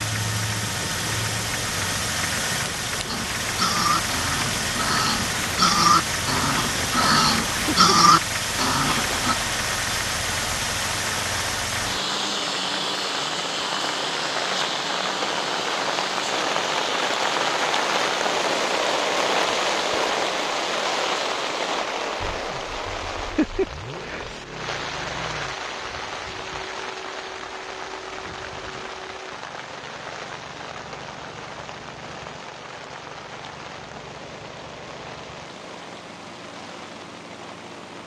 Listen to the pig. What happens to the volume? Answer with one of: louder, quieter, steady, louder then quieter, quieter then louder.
louder.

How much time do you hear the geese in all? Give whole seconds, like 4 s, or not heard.
not heard.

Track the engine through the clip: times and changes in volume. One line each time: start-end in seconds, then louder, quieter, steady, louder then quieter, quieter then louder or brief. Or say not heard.
0.0-38.0 quieter.